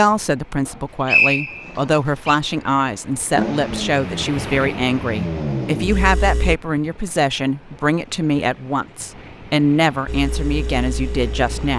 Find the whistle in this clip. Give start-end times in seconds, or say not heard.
0.7-2.4.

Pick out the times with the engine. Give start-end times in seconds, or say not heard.
3.4-6.5, 10.1-11.7.